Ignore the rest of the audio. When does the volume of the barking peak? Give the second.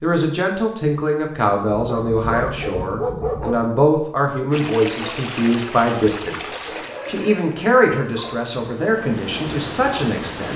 3 s.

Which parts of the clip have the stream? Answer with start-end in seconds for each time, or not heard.
4.5-10.5.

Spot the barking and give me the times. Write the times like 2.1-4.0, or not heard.
1.7-3.6, 6.8-8.4.